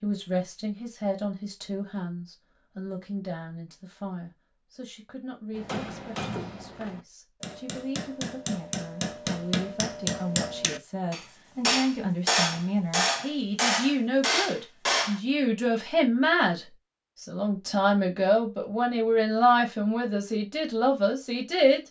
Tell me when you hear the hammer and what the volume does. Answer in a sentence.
The hammer can be heard from 5.5 to 15.2 s, getting louder.